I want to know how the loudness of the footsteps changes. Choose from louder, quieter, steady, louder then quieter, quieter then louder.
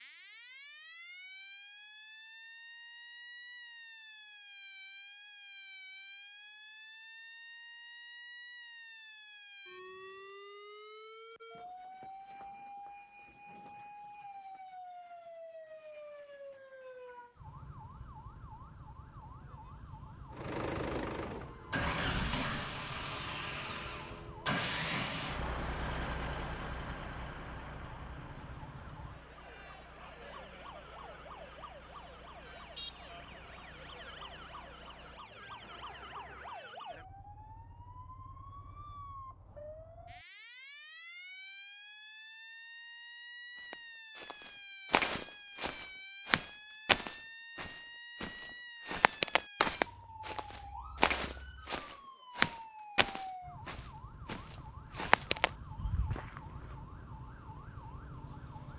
steady.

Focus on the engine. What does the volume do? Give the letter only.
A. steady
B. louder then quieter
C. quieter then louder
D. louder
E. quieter
E.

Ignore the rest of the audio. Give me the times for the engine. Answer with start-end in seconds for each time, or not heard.
20.3-36.6.